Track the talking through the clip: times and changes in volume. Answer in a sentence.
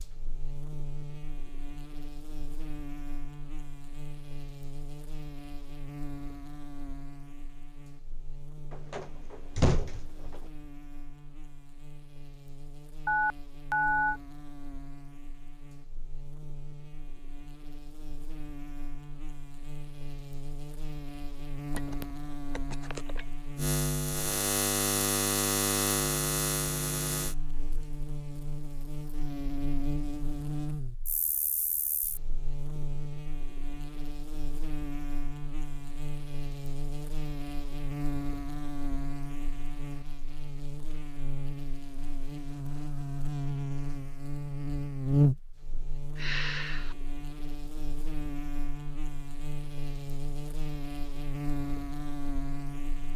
You can't hear the talking here.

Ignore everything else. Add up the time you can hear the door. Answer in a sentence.
You can hear the door for 2 seconds altogether.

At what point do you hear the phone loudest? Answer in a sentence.
The volume of the phone peaks at 14 seconds.